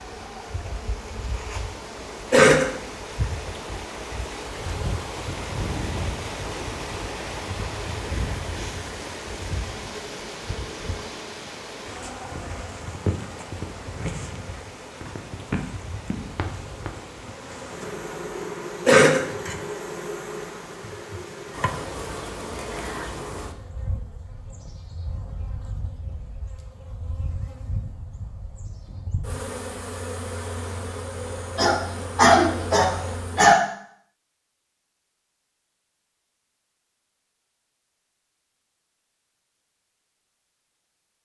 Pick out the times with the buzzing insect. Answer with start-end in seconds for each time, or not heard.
0.0-33.5.